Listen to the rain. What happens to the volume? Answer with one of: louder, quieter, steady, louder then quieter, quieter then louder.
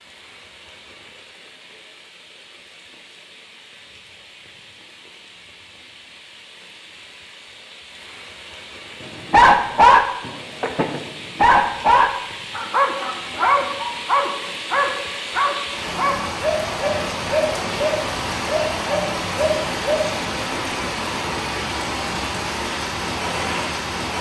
louder.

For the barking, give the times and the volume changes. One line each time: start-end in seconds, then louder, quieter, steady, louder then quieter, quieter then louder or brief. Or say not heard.
9.3-20.7 quieter.